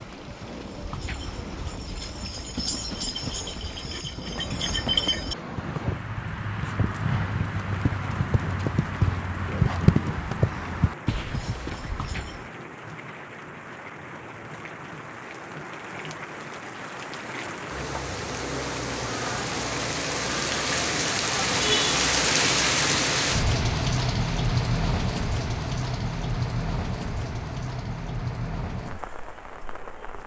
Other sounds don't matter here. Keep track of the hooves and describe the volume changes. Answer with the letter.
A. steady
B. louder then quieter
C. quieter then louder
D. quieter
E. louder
E.